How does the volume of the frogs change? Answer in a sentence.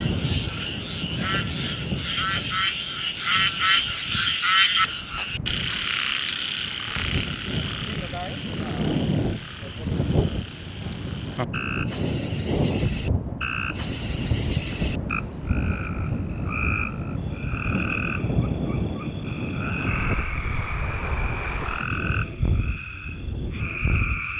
The volume of the frogs goes down.